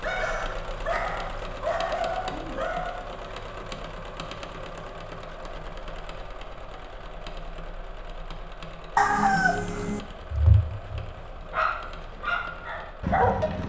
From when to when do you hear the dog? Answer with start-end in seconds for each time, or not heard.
0.0-3.1, 9.7-13.6.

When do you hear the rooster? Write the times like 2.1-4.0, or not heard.
8.9-10.0.